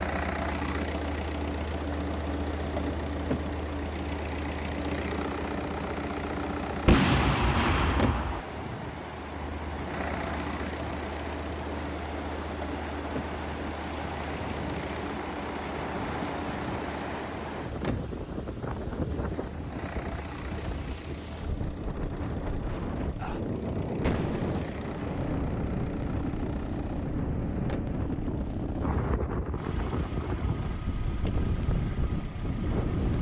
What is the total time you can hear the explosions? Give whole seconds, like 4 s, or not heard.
3 s.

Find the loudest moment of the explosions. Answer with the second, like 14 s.
7 s.